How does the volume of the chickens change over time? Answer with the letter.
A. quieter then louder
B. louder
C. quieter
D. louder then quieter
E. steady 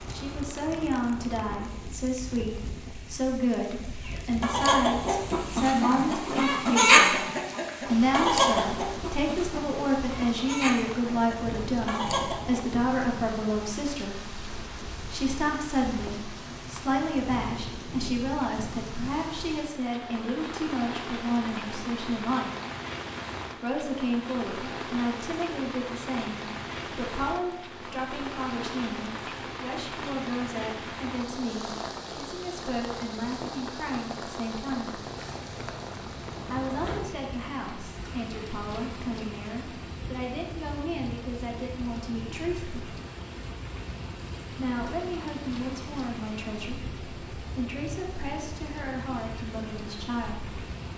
D.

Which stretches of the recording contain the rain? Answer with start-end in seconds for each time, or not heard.
0.0-50.9.